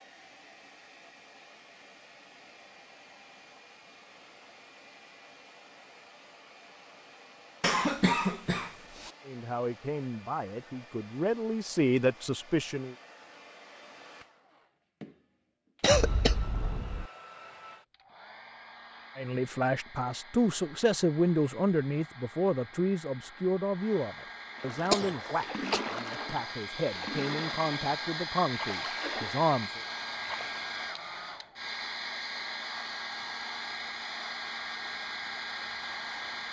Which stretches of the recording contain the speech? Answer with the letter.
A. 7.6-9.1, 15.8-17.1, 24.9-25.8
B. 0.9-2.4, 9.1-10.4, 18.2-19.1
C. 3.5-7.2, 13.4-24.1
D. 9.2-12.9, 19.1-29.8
D.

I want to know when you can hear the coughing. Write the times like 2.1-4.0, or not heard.
7.6-9.1, 15.8-17.1, 24.9-25.8.